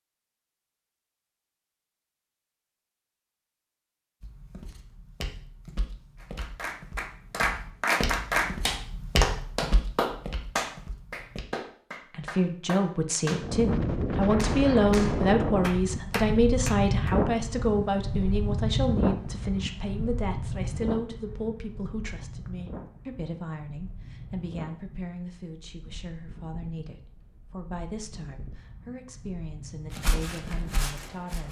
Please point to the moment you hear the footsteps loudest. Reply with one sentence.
The loudest moment of the footsteps is at 9 seconds.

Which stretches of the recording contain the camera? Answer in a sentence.
The camera can't be heard in this clip.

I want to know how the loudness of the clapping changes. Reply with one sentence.
The volume of the clapping goes down.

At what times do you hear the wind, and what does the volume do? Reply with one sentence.
The wind can be heard from 13.4 to 31.4 s, getting quieter.